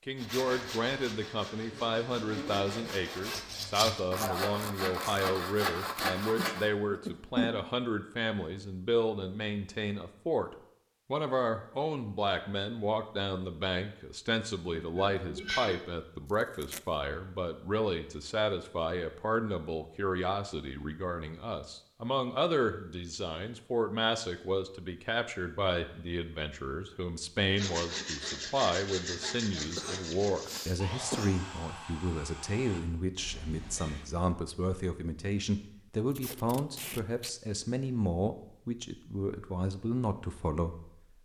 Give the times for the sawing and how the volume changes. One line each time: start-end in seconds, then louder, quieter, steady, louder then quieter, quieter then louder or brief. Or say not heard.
0.1-6.7 louder
27.5-34.0 quieter.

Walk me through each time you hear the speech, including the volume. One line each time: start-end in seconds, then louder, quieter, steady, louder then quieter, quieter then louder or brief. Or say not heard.
0.1-41.2 steady.